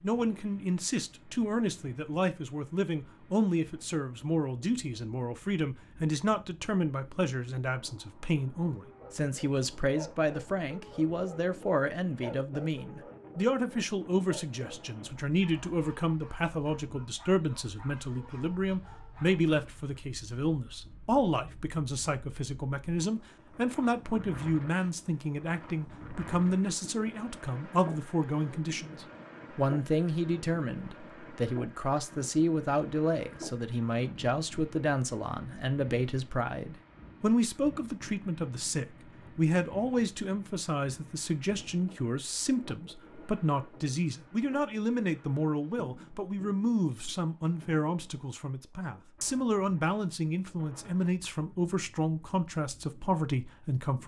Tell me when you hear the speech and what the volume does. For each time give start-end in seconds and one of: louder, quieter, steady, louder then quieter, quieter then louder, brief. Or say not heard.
0.0-54.0 steady.